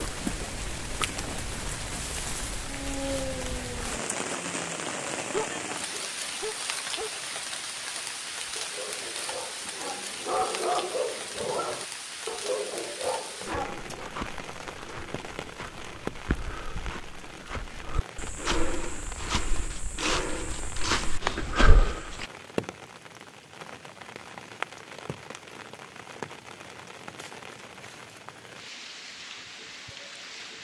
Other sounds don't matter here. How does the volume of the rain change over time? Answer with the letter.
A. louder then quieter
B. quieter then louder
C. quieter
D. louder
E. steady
C.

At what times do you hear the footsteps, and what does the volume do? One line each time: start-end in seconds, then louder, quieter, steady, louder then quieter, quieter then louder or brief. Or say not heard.
13.6-22.2 louder.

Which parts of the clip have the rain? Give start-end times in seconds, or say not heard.
0.0-30.6.